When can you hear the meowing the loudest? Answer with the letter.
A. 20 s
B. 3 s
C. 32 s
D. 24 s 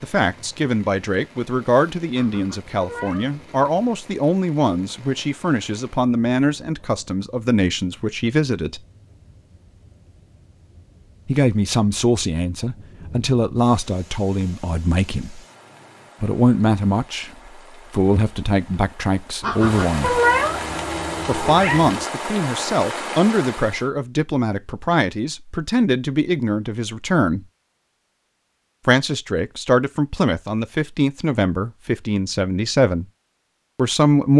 A.